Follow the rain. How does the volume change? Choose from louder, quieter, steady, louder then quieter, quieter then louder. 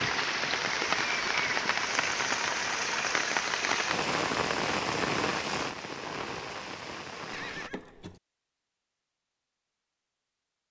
quieter.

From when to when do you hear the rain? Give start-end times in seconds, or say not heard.
0.0-7.7.